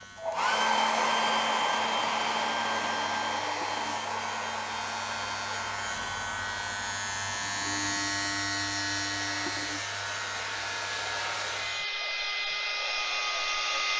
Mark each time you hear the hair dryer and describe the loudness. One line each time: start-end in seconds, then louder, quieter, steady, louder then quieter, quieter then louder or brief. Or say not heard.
0.1-13.9 quieter then louder.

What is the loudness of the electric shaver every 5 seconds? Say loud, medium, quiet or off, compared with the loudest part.
medium, loud, medium.